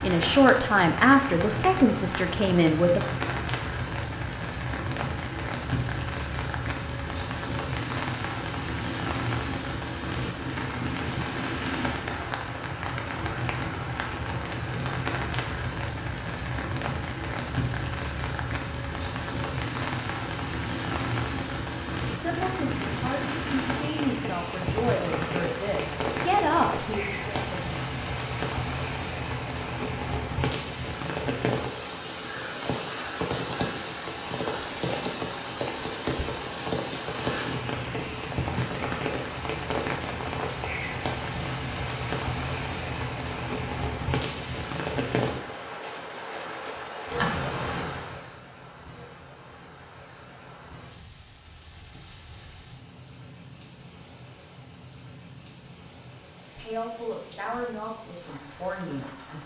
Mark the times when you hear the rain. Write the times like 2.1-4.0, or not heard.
0.0-59.4.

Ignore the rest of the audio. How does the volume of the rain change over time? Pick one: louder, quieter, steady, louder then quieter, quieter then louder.
quieter.